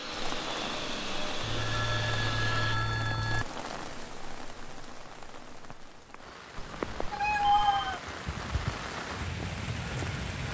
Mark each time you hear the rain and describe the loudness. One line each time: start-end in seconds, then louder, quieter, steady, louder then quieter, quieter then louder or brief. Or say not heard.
0.0-10.4 quieter then louder.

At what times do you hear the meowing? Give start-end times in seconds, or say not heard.
6.5-8.0.